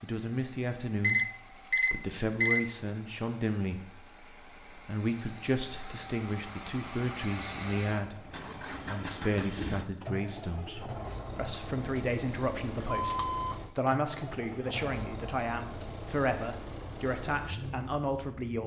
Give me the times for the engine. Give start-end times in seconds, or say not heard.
0.0-18.6.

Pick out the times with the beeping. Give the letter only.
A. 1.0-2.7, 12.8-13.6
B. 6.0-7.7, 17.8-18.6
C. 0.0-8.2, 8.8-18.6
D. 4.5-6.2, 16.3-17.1
A.